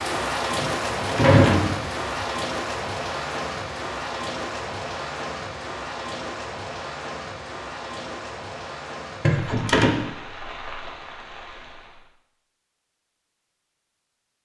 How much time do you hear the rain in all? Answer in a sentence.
The rain can be heard for 12 seconds in total.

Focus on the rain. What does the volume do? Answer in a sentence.
The loudness of the rain goes down.